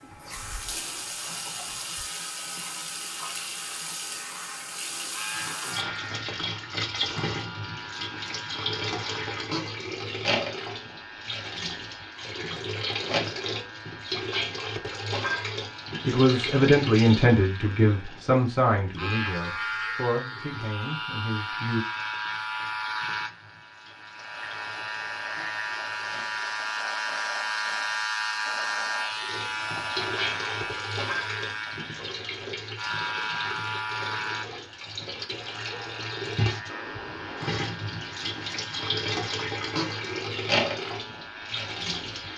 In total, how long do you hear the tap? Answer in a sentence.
The tap can be heard for 40 seconds in total.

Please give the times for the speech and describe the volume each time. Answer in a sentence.
The speech can be heard from 16.1 to 21.8 s, getting quieter.